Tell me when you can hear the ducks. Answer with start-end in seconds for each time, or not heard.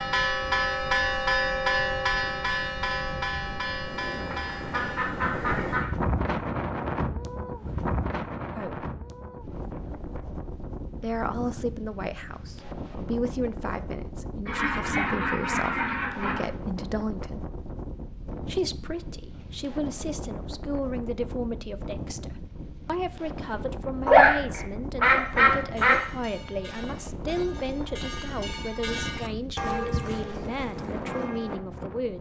4.3-5.9, 14.4-16.4, 24.1-26.0.